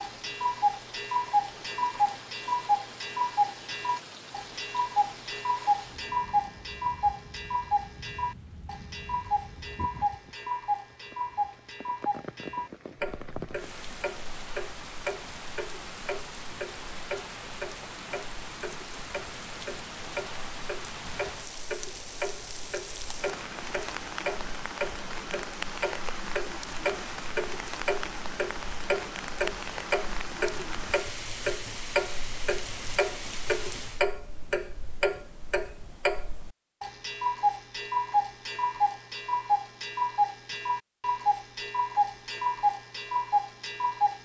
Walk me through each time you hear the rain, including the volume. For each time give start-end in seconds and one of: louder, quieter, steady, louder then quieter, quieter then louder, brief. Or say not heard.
0.0-34.0 louder.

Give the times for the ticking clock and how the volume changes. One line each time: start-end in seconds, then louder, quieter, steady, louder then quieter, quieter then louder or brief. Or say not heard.
0.0-44.1 quieter then louder.